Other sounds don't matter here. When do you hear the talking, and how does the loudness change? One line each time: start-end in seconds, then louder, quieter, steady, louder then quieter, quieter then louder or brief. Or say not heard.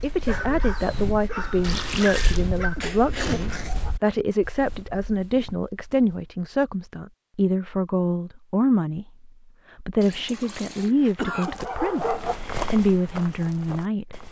0.0-14.2 steady.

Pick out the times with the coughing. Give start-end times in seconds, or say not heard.
2.0-3.8, 10.8-11.6.